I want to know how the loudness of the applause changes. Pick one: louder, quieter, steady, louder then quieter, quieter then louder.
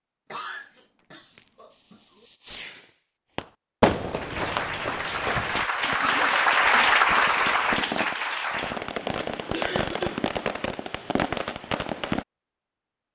louder then quieter.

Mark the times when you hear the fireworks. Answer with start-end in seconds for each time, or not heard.
1.1-12.2.